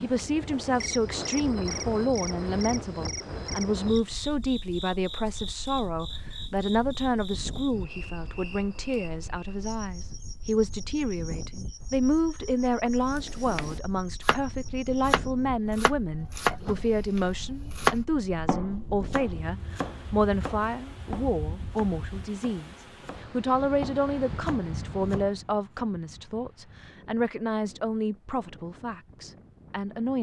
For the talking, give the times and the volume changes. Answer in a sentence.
The talking can be heard from 0.0 to 30.1 s, at a steady volume.